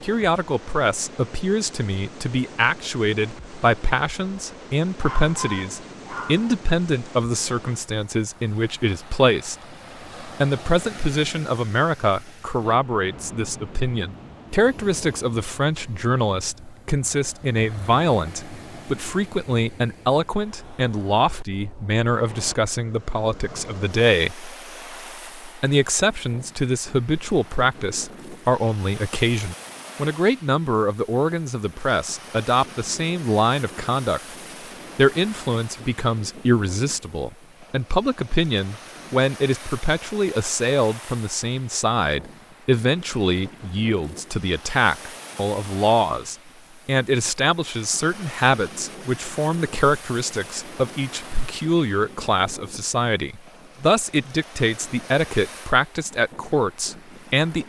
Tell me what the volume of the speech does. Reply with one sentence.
The loudness of the speech stays about the same.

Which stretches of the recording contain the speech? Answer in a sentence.
You can hear the speech from 0.0 to 9.6 s, from 10.2 to 24.5 s, from 25.4 to 34.2 s and from 35.0 to 57.6 s.